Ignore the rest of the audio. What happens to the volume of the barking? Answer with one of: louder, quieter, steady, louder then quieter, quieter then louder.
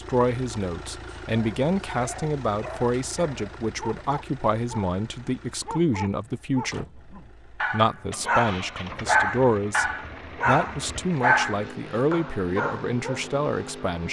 louder.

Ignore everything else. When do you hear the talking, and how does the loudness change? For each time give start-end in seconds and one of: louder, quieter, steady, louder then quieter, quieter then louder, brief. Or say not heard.
0.0-14.0 steady.